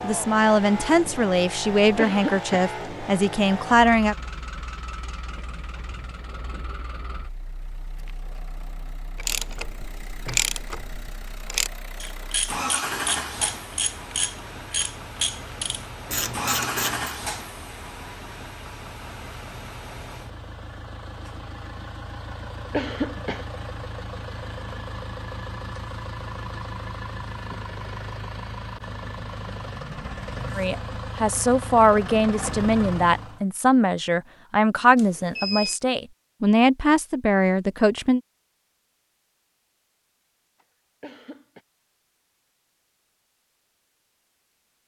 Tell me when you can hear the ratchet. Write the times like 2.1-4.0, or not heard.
9.2-17.1.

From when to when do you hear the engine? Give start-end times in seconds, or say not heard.
0.0-33.5.